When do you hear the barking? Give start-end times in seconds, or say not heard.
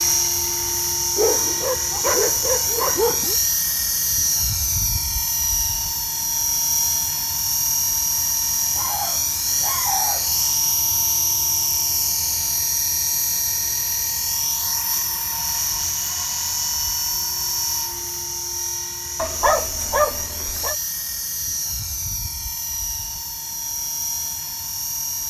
1.1-3.4, 8.8-10.3, 19.1-20.8.